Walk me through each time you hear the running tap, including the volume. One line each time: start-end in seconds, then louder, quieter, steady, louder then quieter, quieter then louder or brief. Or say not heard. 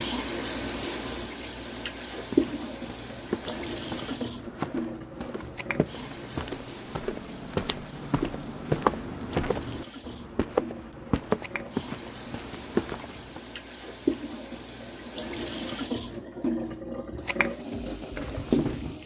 0.0-19.0 quieter then louder.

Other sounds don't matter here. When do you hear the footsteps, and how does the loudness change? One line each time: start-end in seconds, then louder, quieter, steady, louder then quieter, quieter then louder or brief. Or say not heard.
2.1-13.4 louder.